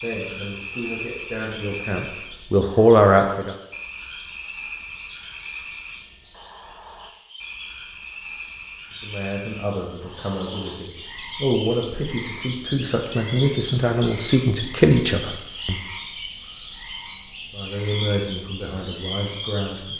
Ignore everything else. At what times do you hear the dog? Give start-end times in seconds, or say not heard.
not heard.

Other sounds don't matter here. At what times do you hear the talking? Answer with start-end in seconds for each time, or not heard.
0.0-3.5, 9.0-15.8, 17.5-19.9.